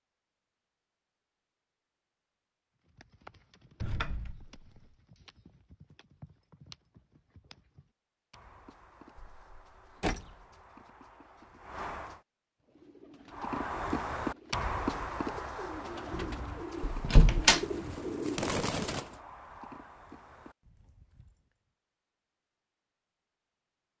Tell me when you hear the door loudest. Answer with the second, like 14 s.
17 s.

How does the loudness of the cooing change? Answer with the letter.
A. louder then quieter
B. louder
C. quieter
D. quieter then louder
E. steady
B.